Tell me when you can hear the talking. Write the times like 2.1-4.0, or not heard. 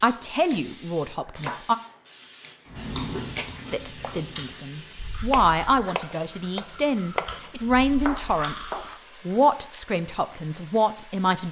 0.0-1.8, 3.7-11.4.